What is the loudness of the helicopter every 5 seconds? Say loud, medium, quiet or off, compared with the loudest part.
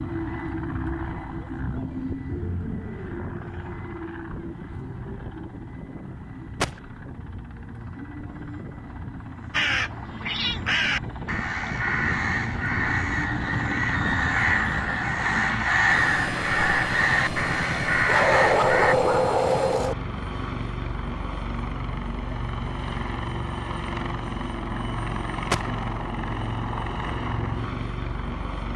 loud, medium, loud, loud, loud, loud.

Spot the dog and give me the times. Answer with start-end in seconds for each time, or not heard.
18.1-19.9.